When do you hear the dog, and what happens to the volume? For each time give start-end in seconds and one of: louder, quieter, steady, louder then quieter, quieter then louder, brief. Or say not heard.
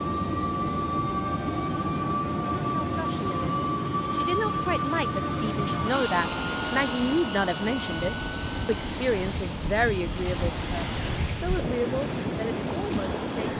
not heard.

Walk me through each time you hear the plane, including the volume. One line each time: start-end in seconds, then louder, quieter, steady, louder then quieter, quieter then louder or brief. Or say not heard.
0.0-13.5 quieter.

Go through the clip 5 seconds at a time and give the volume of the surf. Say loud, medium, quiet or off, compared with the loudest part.
off, medium, loud.